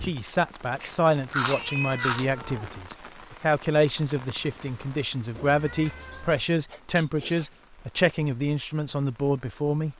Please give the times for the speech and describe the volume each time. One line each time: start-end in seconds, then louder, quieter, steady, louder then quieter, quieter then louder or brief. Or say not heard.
0.0-9.9 steady.